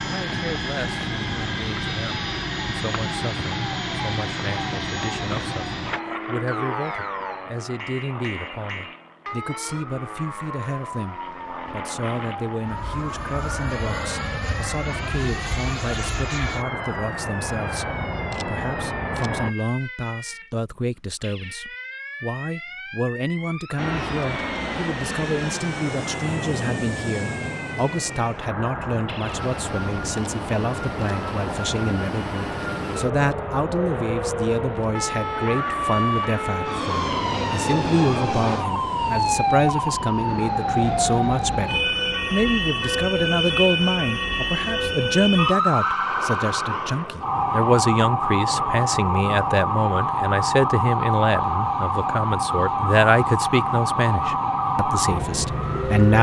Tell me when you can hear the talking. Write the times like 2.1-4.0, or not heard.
0.0-56.1.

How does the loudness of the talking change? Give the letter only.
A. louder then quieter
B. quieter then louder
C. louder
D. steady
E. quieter
C.